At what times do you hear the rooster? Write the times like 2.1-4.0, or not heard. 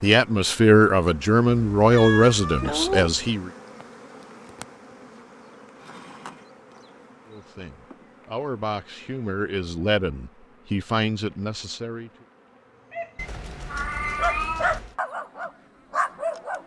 not heard.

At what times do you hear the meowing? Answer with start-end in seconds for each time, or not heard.
1.5-3.3, 13.2-14.9.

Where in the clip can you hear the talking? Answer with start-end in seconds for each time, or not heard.
0.0-3.5, 7.2-12.1.